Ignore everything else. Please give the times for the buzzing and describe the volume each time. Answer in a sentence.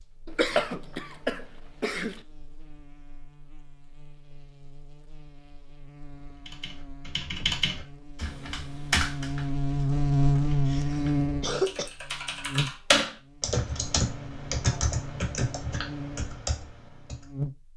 You can hear the buzzing from 0.0 to 17.7 s, getting louder then quieter.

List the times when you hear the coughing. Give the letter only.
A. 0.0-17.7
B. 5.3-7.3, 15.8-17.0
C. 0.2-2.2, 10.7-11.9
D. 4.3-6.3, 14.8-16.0
C.